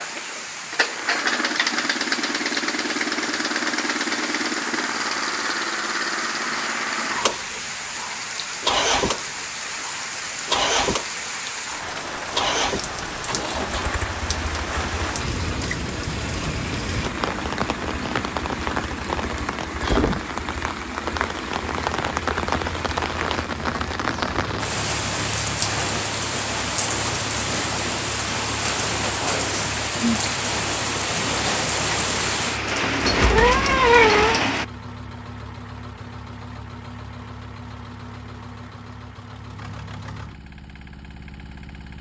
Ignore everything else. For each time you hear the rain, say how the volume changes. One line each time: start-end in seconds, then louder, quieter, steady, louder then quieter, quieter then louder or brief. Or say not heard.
0.0-34.6 louder.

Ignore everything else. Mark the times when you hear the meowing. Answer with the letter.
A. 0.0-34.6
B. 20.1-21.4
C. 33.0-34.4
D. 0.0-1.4
C.